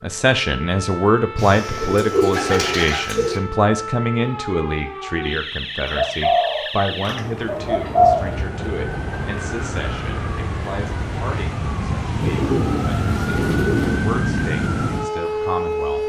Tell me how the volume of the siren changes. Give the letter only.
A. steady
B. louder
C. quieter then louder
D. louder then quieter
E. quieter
B.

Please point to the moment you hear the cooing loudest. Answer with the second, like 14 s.
8 s.